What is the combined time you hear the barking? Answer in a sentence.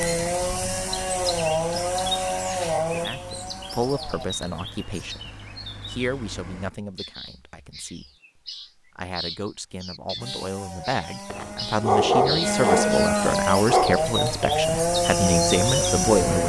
You can hear the barking for 3 seconds altogether.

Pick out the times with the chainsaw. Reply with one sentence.
You can hear the chainsaw from 0.0 to 4.3 s and from 10.2 to 16.4 s.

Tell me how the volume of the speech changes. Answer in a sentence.
The volume of the speech goes down, then up.